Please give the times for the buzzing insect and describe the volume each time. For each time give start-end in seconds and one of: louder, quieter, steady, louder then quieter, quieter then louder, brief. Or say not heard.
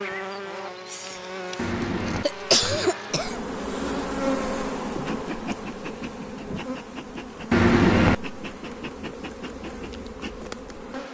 0.0-11.0 louder then quieter.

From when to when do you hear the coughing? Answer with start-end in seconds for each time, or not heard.
0.8-3.5.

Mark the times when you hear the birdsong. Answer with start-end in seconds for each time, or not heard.
not heard.